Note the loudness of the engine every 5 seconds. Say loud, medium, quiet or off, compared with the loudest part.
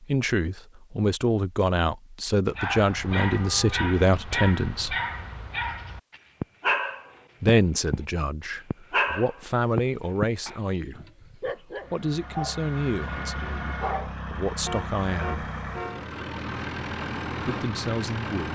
off, off, loud, loud.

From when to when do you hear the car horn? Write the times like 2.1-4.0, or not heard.
3.2-3.9, 14.7-16.1.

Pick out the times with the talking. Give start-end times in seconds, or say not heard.
0.0-5.0, 7.4-15.5, 17.4-18.5.